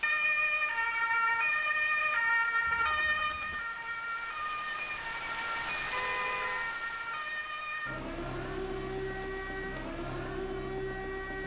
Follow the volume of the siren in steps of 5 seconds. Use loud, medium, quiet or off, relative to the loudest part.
loud, medium, medium.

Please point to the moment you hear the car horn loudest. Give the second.
6 s.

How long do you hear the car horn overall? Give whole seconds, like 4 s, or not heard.
2 s.